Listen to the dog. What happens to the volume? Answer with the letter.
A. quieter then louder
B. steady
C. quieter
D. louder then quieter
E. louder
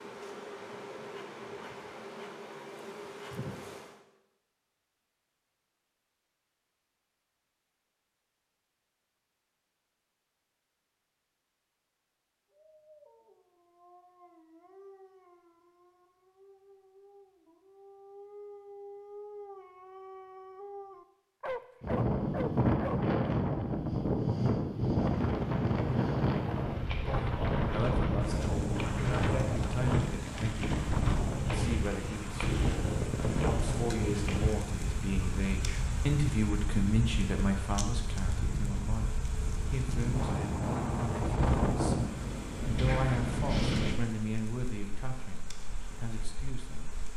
E.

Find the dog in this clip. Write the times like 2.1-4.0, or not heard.
12.5-23.4.